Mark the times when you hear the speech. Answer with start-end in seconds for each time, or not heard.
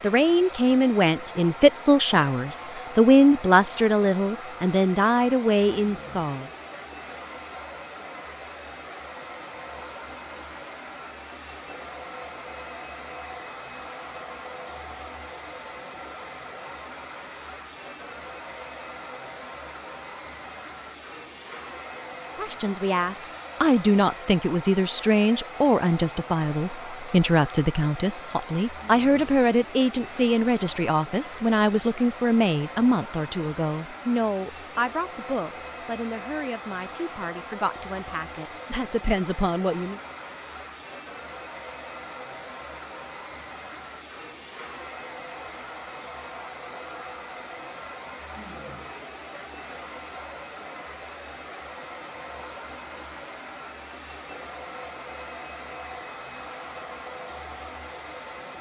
0.0-6.5, 22.4-40.0.